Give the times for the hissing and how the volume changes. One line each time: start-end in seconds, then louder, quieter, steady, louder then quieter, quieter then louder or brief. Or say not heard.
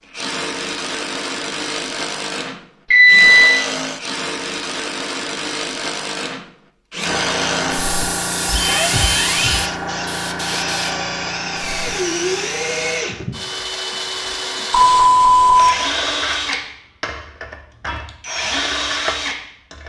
7.0-13.1 quieter.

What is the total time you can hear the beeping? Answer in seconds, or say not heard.
3 s.